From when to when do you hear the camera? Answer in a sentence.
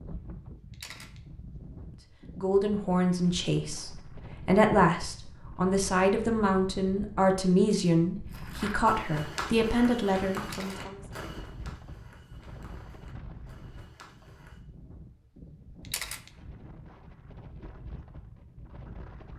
The camera can be heard from 0.7 to 1.2 s, from 10.4 to 10.9 s and from 15.8 to 16.3 s.